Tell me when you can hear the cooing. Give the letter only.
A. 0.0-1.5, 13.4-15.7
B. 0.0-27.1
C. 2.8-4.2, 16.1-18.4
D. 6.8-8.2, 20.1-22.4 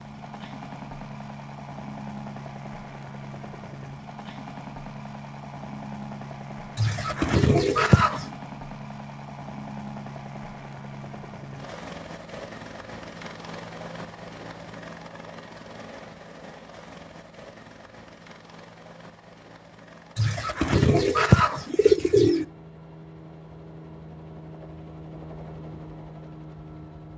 D.